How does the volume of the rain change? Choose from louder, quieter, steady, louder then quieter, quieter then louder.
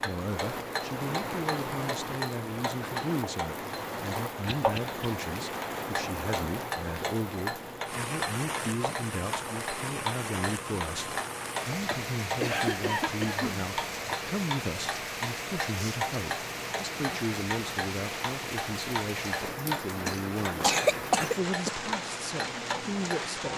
steady.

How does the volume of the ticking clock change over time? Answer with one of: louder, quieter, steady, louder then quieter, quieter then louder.
steady.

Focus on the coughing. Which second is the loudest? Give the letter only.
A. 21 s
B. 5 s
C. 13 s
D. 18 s
A.